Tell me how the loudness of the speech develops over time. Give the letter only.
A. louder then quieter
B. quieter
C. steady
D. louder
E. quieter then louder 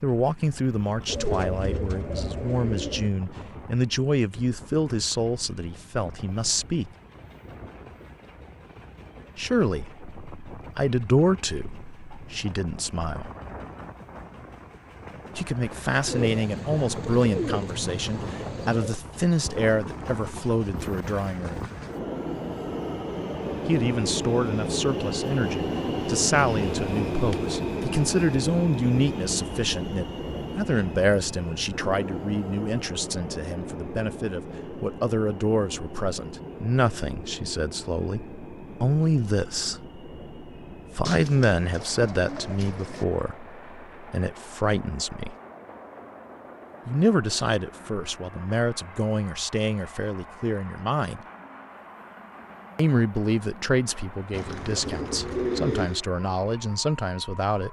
C.